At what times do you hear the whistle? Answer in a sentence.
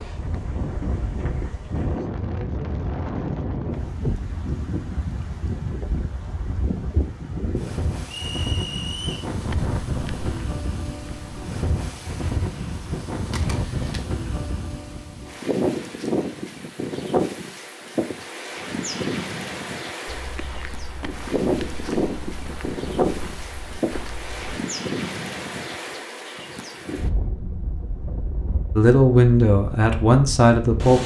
You can hear the whistle from 8.2 to 9.3 s.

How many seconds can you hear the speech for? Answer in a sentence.
The speech can be heard for 2 seconds in total.